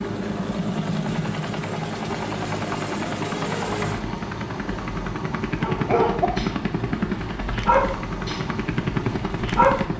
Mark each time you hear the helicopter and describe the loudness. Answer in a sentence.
The helicopter can be heard from 0.0 to 9.9 s, at a steady volume.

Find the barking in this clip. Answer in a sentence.
You can hear the barking from 5.6 to 9.8 s.